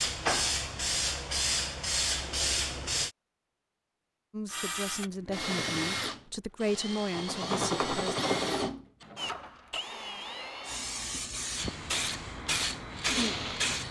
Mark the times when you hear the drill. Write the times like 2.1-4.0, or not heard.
4.5-13.8.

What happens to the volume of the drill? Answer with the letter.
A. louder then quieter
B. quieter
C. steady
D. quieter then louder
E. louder
B.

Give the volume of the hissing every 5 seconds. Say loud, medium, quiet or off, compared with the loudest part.
loud, off, loud.